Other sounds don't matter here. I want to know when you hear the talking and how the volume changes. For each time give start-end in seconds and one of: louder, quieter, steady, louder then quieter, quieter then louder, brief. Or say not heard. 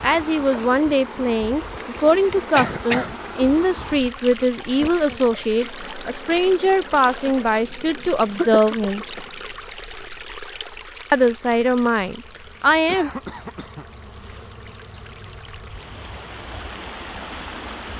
0.0-9.1 steady
11.1-13.1 brief.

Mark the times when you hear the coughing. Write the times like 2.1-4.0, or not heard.
2.5-3.1, 8.0-9.2, 12.3-13.8.